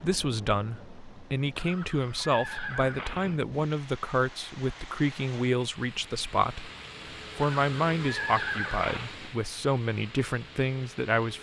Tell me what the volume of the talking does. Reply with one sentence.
The loudness of the talking stays about the same.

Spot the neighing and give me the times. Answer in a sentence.
The neighing can be heard from 1.6 to 3.4 s and from 7.4 to 9.1 s.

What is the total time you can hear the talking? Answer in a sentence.
You can hear the talking for 11 seconds altogether.